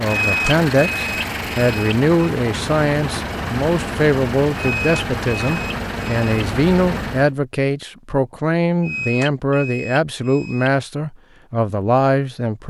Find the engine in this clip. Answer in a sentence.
The engine can be heard from 0.0 to 7.3 s.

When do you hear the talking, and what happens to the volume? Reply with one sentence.
The talking can be heard from 0.0 to 12.6 s, at a steady volume.